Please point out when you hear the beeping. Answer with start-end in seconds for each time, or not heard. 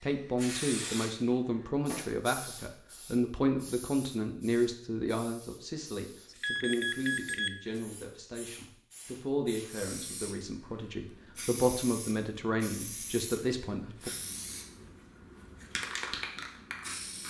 6.2-7.8.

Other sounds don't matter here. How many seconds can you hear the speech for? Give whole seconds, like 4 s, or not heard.
14 s.